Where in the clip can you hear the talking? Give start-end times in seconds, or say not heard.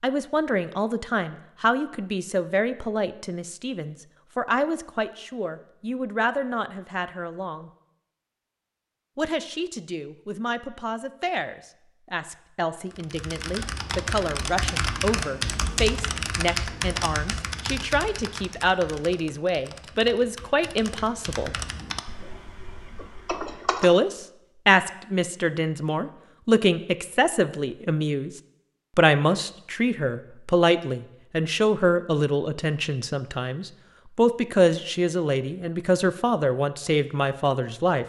0.0-7.7, 9.2-21.5, 23.8-28.3, 28.9-38.0.